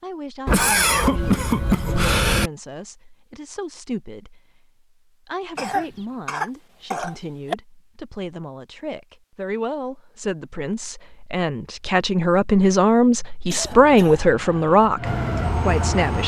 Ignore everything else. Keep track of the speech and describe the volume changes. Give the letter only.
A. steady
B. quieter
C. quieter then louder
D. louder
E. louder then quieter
D.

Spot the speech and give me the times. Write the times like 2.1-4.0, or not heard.
0.0-16.2.